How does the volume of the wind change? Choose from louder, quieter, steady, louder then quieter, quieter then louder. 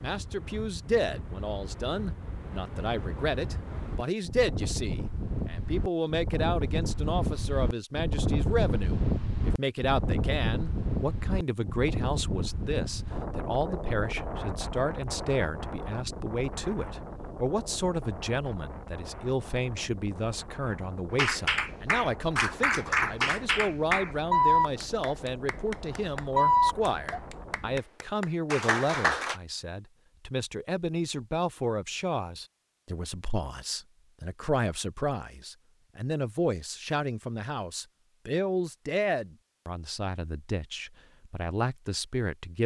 louder then quieter.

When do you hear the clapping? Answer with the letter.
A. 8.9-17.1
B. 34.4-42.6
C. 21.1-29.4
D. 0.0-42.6
C.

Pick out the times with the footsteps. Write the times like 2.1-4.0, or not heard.
not heard.